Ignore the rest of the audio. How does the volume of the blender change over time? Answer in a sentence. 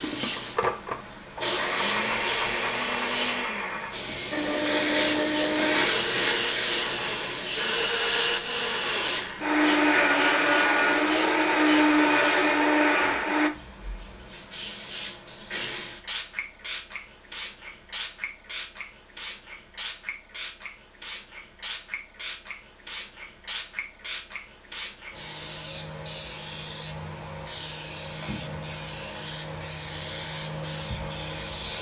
The volume of the blender goes up.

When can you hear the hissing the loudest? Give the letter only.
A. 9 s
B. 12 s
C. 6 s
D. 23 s
C.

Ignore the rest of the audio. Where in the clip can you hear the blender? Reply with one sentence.
The blender can be heard from 0.0 to 13.5 s.